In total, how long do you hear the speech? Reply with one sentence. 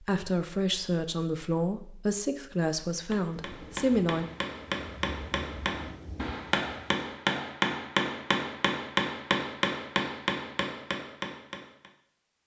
The speech can be heard for 4 seconds in total.